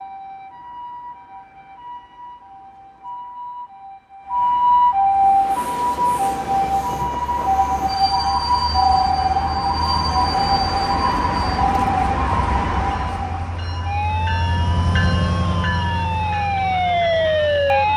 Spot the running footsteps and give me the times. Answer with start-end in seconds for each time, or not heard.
not heard.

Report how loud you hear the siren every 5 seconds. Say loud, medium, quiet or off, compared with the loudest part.
medium, loud, loud, loud.